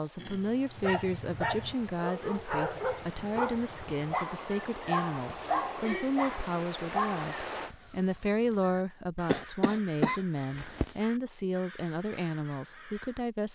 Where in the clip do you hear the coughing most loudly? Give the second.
10 s.